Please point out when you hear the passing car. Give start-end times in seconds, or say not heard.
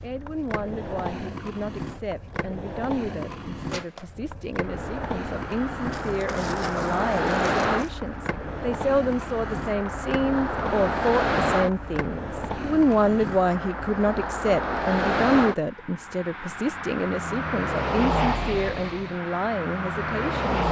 4.6-20.6.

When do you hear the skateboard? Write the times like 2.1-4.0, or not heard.
0.0-13.5.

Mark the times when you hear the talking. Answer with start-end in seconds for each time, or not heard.
0.0-20.6.